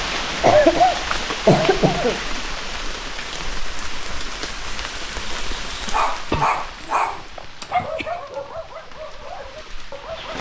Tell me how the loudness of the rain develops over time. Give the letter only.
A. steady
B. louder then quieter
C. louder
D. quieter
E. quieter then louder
D.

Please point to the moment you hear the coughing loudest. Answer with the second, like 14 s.
1 s.